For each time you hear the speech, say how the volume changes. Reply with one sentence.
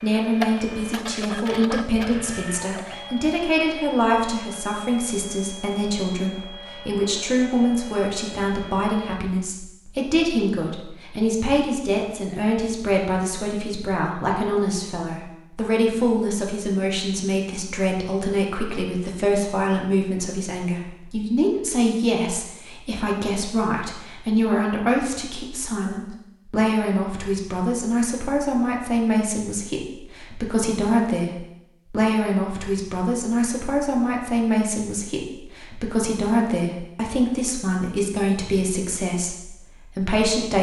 The speech can be heard from 0.0 to 40.5 s, at a steady volume.